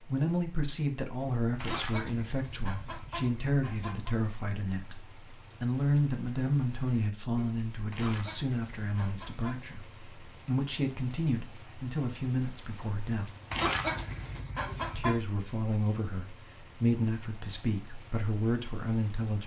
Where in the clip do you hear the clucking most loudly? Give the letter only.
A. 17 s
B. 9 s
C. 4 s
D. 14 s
D.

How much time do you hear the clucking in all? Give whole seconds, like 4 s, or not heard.
6 s.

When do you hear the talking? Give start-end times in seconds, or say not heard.
0.0-13.3, 14.9-19.4.